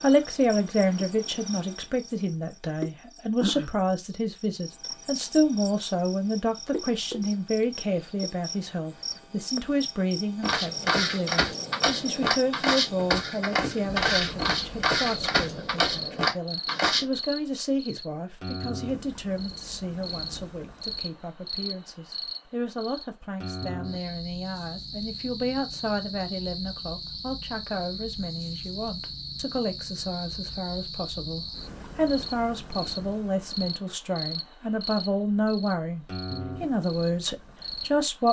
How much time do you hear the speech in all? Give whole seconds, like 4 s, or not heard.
38 s.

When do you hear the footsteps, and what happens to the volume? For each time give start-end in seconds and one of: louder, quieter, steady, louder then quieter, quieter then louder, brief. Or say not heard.
10.4-17.1 steady.